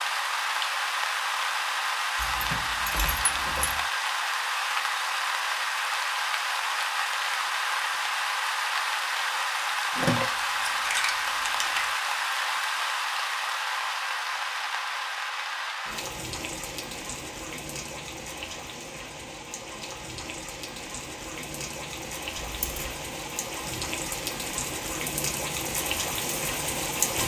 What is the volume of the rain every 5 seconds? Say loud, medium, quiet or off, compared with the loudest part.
loud, loud, loud, medium, medium, loud.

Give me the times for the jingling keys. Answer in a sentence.
You can hear the jingling keys from 2.1 to 3.9 s, from 9.9 to 11.9 s and from 22.4 to 23.0 s.